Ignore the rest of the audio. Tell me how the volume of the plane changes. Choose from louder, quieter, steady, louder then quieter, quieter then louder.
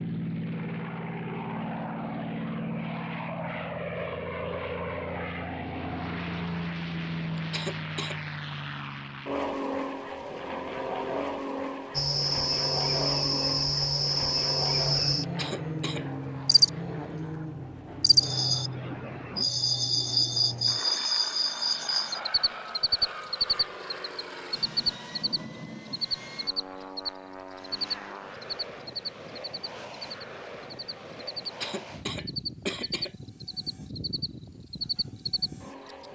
quieter.